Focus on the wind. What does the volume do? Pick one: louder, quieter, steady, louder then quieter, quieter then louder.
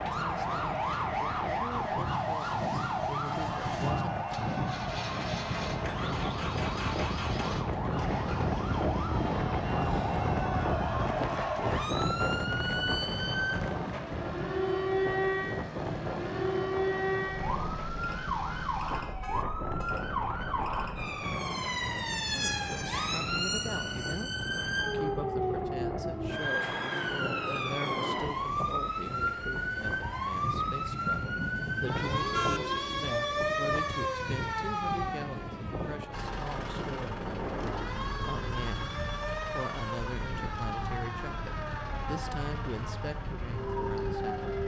quieter.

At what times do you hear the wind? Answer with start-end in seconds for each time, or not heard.
0.0-44.6.